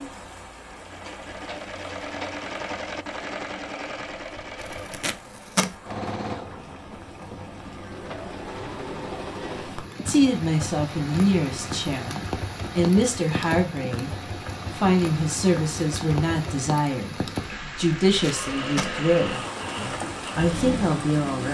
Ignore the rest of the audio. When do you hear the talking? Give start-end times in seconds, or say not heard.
10.1-14.1, 14.8-21.5.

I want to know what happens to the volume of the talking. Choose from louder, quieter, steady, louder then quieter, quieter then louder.
steady.